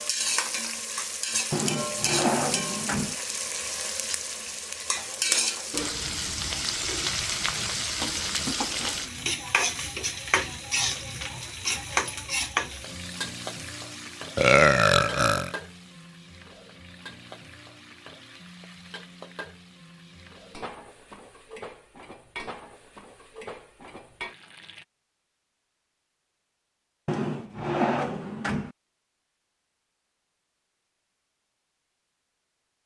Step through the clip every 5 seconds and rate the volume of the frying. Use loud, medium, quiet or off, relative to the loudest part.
loud, loud, loud, quiet, quiet, off, off.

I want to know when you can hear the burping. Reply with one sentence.
The burping can be heard from 14.3 to 15.5 s.